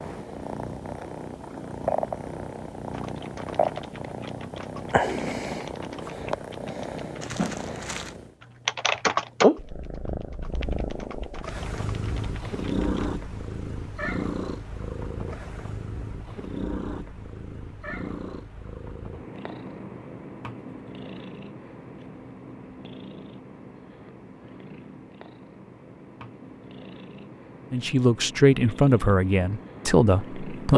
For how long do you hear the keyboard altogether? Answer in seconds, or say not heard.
8 s.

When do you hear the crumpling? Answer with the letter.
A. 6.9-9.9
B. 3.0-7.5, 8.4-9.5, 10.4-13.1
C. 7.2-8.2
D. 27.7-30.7
C.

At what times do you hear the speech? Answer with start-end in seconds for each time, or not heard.
27.7-30.7.